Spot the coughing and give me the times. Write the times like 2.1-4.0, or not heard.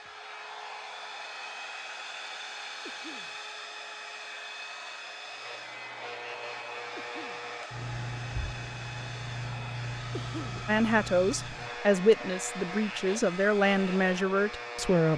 2.8-3.4, 7.0-7.5, 10.1-10.7.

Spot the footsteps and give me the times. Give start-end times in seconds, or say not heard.
not heard.